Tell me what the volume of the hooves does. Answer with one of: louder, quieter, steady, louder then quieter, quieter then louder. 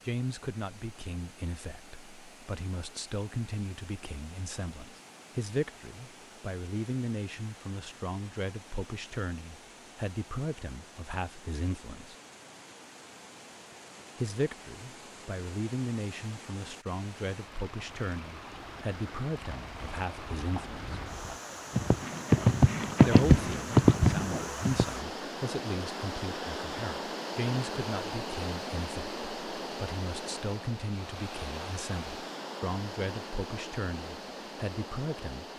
louder.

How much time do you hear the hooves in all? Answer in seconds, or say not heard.
6 s.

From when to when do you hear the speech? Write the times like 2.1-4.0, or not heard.
0.1-12.2, 14.2-21.0, 23.1-35.5.